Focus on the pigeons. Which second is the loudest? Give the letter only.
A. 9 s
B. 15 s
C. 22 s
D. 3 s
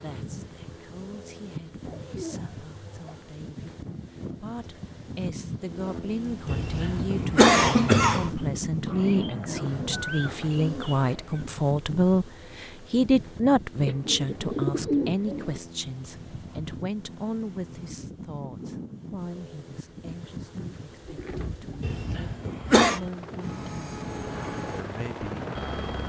B.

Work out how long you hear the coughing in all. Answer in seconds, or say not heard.
3 s.